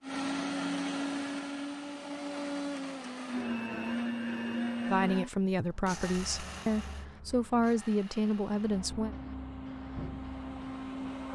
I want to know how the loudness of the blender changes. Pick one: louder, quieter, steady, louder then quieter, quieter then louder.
quieter then louder.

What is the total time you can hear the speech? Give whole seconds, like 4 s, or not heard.
4 s.